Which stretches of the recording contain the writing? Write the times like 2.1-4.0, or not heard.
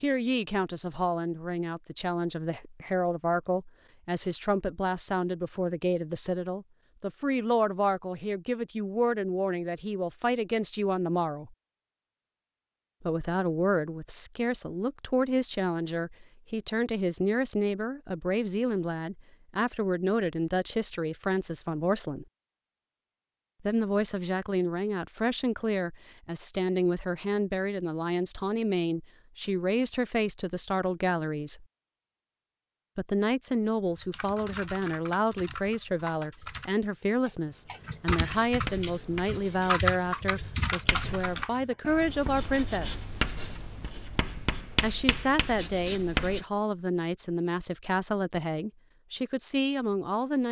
38.2-46.5.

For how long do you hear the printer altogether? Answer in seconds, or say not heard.
not heard.